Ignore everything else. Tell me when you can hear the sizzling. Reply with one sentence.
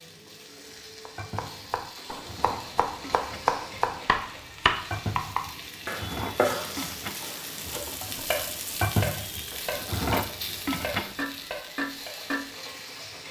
You can hear the sizzling from 0.0 to 13.2 s.